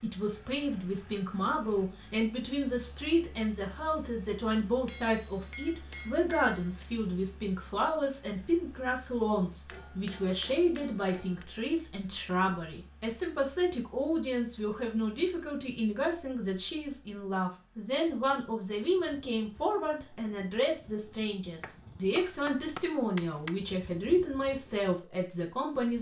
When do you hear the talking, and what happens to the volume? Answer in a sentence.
The talking can be heard from 0.0 to 25.9 s, at a steady volume.